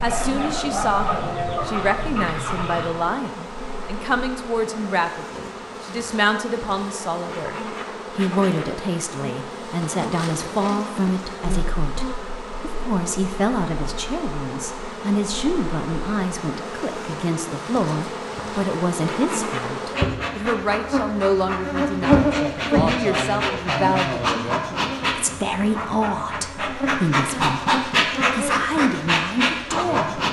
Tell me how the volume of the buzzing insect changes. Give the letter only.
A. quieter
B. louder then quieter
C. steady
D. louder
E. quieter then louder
D.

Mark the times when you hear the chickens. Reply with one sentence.
The chickens can be heard from 0.0 to 3.0 s.